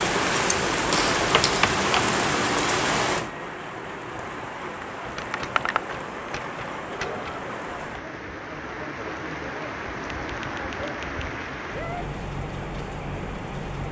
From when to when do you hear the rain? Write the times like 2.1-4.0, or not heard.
0.0-13.8.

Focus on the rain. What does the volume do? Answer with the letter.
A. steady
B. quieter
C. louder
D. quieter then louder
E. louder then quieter
B.